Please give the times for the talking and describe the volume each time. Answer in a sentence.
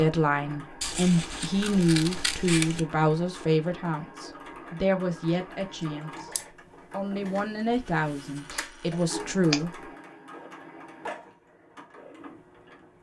The talking can be heard from 0.0 to 6.3 s, getting quieter then louder; and briefly from 6.9 to 9.7 s.